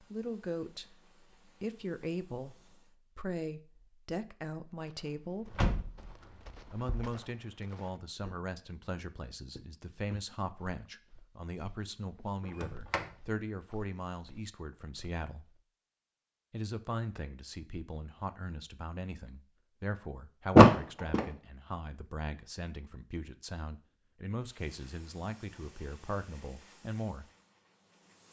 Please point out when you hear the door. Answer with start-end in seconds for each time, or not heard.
5.5-7.1, 12.6-13.1, 20.6-21.2.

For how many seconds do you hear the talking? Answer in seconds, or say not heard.
25 s.